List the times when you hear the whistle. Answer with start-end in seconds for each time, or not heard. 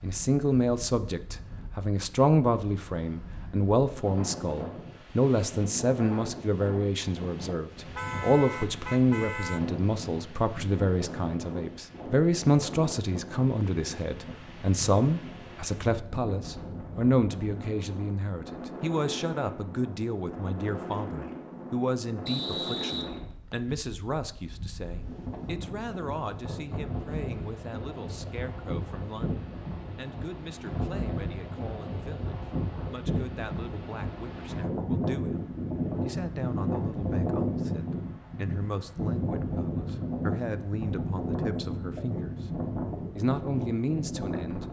22.2-23.8.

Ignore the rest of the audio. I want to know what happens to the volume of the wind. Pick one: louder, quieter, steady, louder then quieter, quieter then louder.
louder.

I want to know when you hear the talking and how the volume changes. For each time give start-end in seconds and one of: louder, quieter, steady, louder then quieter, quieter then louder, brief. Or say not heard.
0.0-42.4 quieter
43.1-44.6 brief.